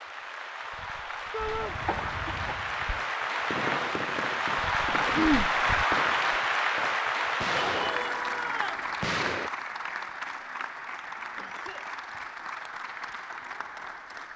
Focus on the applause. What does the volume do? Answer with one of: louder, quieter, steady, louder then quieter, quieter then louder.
louder then quieter.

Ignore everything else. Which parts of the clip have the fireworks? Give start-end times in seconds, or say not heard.
1.4-9.5.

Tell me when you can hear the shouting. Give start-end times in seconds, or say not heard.
1.3-1.8, 7.6-8.8.